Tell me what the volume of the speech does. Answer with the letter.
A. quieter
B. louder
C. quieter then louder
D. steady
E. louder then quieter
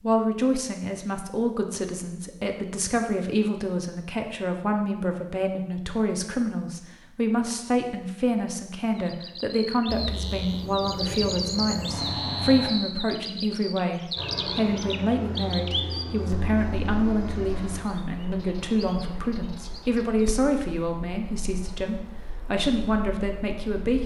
D.